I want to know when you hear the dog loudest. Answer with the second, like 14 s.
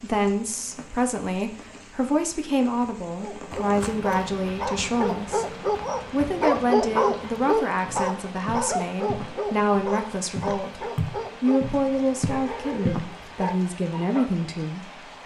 7 s.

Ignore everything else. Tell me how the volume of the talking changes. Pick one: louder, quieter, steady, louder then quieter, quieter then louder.
steady.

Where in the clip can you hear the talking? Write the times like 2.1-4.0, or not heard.
0.0-5.5, 6.1-15.1.